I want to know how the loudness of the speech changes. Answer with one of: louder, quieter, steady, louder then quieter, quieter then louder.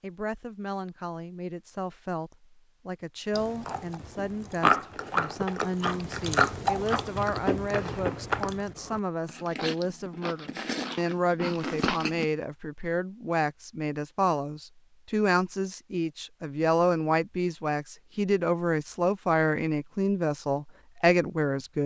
louder.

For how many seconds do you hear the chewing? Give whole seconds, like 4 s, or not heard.
9 s.